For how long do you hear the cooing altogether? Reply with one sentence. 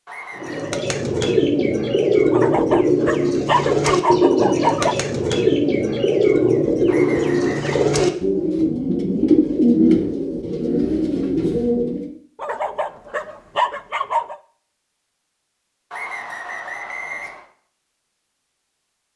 You can hear the cooing for 12 seconds altogether.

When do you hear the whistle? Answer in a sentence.
The whistle can be heard from 0.1 to 0.8 s, from 6.8 to 7.8 s and from 15.9 to 17.4 s.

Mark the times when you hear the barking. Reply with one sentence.
The barking can be heard from 2.3 to 5.0 s and from 12.3 to 14.3 s.